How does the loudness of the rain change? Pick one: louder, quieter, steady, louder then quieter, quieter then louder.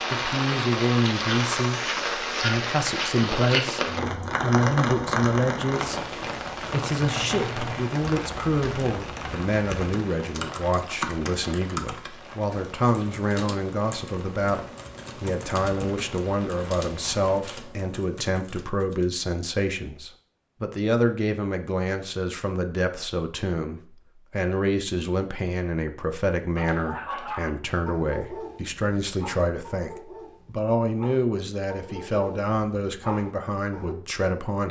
quieter.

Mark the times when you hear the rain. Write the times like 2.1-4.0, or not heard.
0.0-17.4.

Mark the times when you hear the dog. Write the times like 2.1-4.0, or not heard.
26.6-34.0.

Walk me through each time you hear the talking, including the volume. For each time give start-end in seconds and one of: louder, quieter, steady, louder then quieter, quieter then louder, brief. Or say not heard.
0.1-34.6 steady.